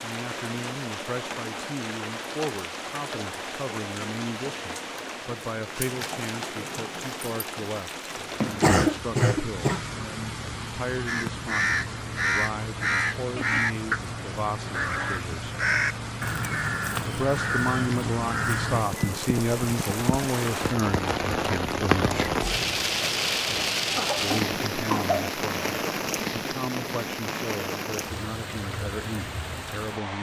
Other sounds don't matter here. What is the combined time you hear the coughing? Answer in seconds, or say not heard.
3 s.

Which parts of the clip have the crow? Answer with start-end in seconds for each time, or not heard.
11.1-18.9.